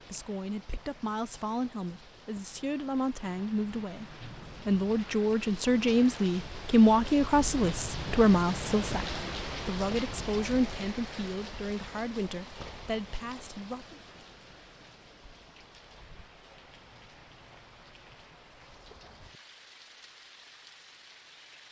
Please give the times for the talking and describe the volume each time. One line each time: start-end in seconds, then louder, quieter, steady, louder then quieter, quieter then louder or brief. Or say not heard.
0.1-14.0 louder then quieter.